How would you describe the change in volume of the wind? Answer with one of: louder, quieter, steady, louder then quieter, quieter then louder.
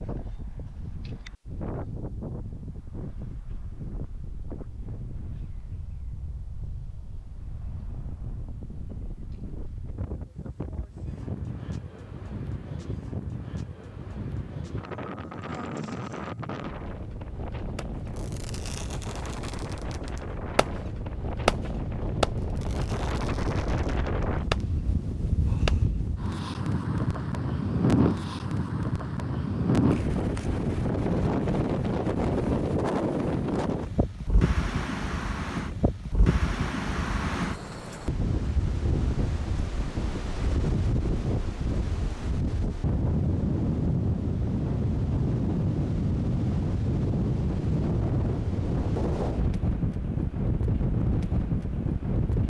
louder.